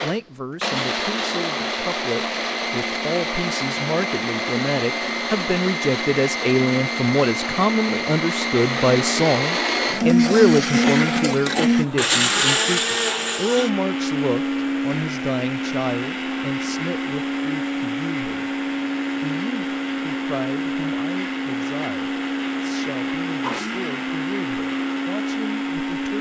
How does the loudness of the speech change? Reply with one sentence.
The volume of the speech goes up, then down.